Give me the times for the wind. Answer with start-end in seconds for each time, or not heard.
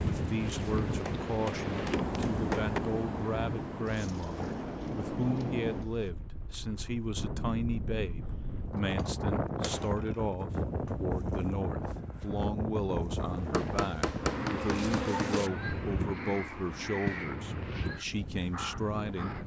0.0-19.4.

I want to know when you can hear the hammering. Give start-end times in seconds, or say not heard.
1.1-2.8, 8.8-10.3, 13.5-15.4.